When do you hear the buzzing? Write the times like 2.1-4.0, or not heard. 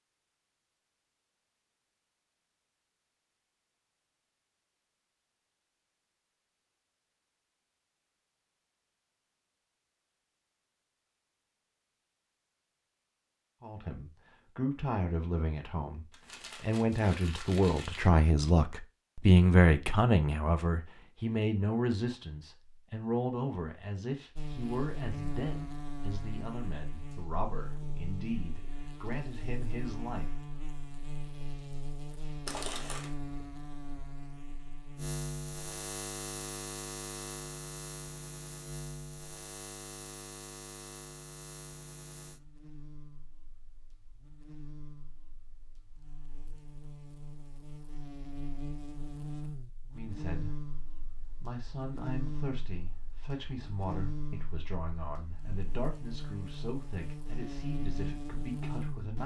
24.4-59.2.